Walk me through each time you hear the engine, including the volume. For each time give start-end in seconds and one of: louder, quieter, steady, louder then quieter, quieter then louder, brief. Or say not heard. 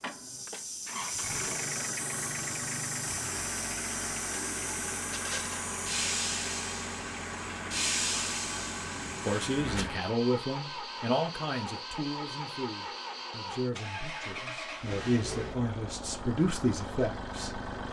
0.0-17.8 steady.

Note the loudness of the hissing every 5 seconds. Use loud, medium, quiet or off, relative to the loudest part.
loud, loud, off, off.